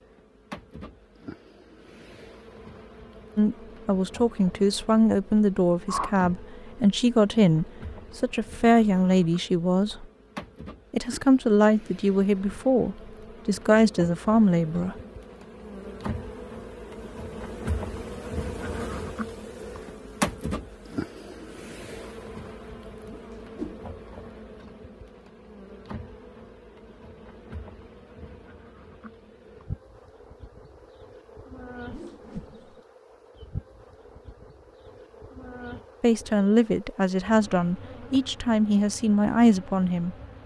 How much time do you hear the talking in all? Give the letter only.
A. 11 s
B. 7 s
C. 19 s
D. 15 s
D.